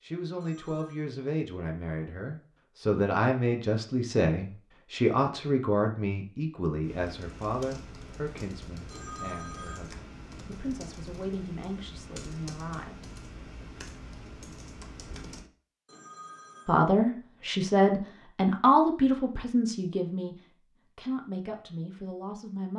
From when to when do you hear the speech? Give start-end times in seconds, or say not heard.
0.0-13.1, 16.6-22.7.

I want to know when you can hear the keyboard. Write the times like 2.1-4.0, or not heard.
6.8-15.5.